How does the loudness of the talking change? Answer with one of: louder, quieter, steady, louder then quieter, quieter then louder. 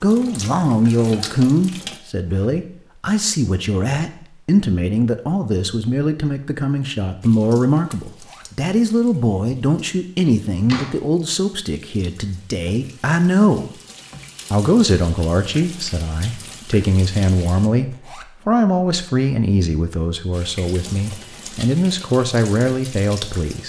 steady.